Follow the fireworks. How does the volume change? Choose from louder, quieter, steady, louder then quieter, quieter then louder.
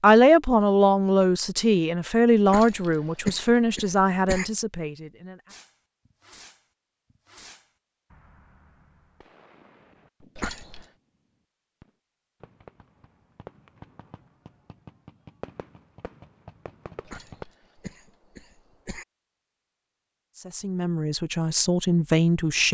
quieter then louder.